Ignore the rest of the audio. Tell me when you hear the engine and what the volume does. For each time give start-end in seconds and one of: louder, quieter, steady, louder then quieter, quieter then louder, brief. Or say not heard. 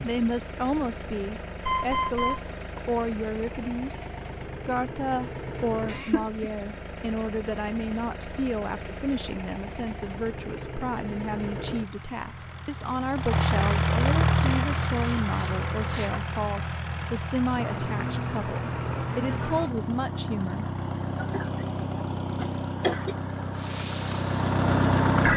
0.0-25.3 louder.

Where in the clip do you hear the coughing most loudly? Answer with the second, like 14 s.
23 s.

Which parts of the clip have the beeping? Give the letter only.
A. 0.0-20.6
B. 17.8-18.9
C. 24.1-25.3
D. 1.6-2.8
D.